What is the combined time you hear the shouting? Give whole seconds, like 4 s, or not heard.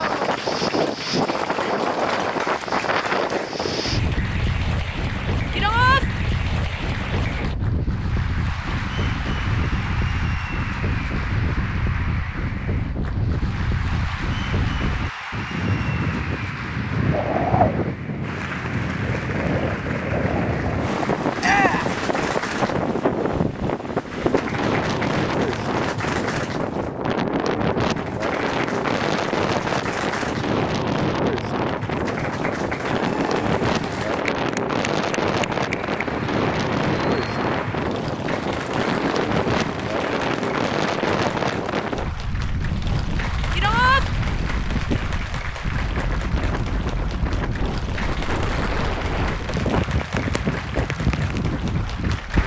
2 s.